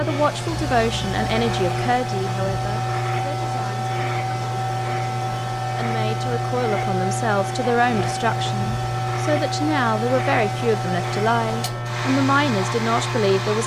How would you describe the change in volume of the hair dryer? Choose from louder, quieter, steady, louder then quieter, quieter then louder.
steady.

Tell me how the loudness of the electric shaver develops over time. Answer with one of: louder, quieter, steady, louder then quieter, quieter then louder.
steady.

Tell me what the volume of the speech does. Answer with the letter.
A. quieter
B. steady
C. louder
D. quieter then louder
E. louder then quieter
D.